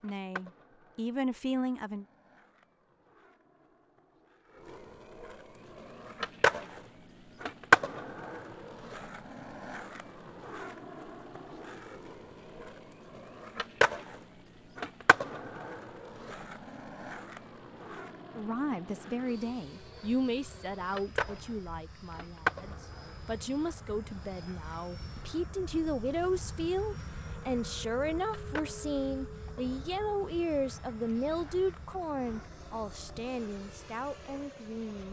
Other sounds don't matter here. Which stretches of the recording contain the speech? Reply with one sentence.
You can hear the speech from 0.0 to 2.0 s and from 18.4 to 35.0 s.